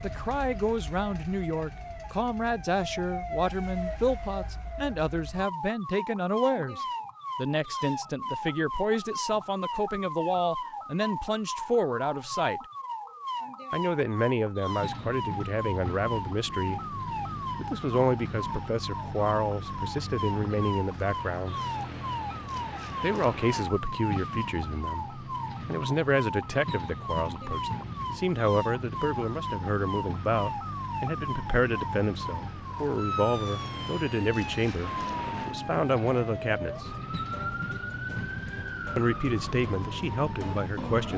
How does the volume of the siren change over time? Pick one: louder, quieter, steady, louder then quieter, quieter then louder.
steady.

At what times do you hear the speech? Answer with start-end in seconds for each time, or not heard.
0.0-12.7, 13.7-16.9, 17.6-21.6, 23.0-36.9, 39.0-41.1.